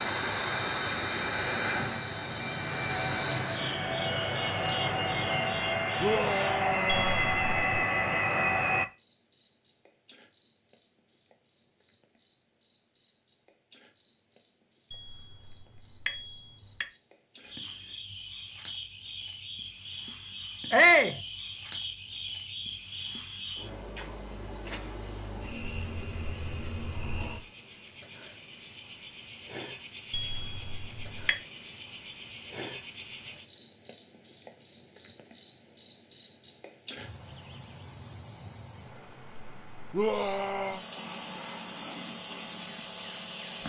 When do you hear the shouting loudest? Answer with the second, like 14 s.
21 s.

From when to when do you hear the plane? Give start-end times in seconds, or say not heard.
0.0-8.8.